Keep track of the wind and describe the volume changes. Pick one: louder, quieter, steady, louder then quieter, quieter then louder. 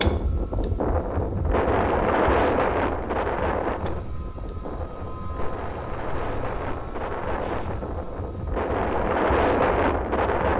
quieter then louder.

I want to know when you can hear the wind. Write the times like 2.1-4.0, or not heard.
0.0-10.5.